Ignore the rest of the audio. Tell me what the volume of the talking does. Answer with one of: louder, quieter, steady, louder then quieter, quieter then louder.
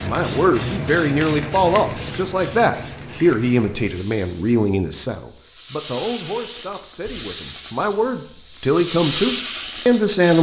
quieter then louder.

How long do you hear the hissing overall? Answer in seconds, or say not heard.
10 s.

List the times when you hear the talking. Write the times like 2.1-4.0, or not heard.
0.0-10.3.